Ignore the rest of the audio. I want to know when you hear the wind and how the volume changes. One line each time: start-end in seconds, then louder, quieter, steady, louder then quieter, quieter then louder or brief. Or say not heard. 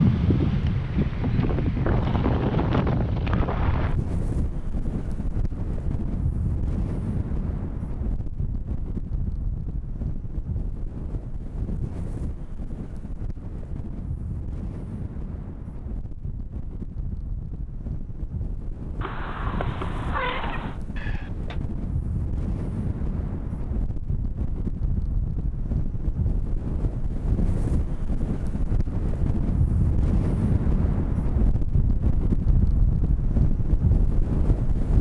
0.0-34.9 quieter then louder.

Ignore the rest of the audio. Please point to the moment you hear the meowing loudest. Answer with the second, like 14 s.
20 s.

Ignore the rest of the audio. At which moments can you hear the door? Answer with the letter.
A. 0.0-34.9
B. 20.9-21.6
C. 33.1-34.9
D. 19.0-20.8
B.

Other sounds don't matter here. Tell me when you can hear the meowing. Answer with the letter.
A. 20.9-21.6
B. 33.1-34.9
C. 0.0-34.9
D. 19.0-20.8
D.